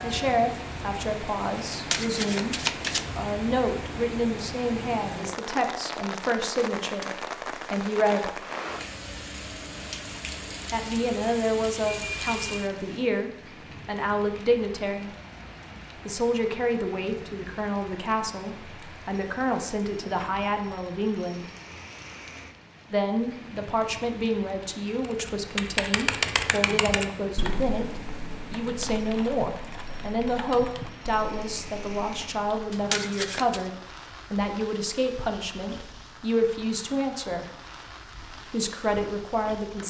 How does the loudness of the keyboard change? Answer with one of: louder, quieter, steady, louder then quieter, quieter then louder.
quieter.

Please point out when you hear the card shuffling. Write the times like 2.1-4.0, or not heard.
1.7-3.1, 32.7-33.6.